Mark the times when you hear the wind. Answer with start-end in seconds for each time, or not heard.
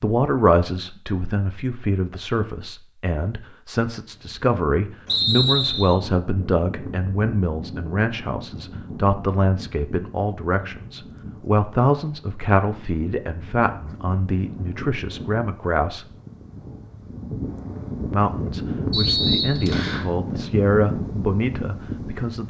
4.1-22.4.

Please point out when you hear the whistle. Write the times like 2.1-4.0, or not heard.
5.0-6.0, 18.9-20.1.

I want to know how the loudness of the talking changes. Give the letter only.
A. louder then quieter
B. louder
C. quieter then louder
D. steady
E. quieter
D.